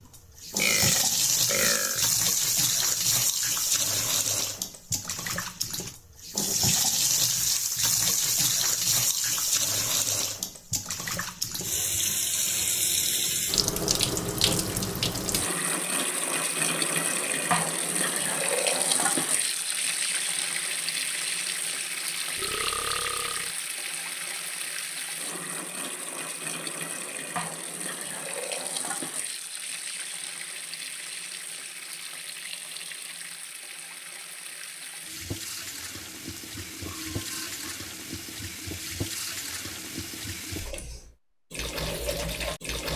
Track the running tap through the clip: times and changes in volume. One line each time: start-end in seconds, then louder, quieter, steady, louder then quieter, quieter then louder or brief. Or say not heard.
0.1-42.9 quieter.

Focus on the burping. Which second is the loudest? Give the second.
1 s.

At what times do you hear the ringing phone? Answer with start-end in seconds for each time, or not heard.
not heard.